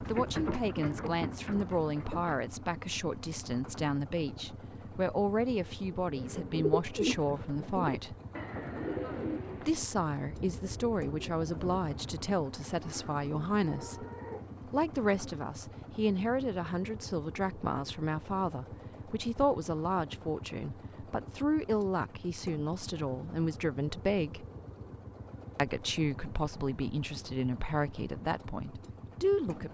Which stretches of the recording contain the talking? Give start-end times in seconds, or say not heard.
0.0-8.2, 9.6-14.1, 14.7-24.4, 25.6-29.6.